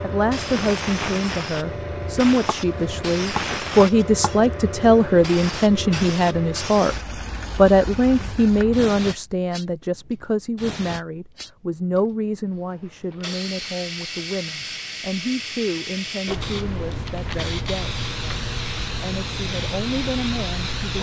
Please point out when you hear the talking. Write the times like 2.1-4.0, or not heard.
0.0-7.0, 7.5-20.9.